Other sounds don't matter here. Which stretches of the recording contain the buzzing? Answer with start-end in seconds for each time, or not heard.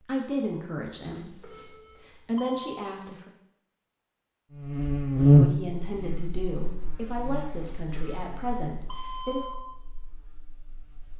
4.5-11.1.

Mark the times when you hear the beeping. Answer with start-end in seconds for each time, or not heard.
1.1-2.8, 7.8-9.6.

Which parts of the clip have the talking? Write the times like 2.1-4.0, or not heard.
0.0-3.3, 5.2-9.4.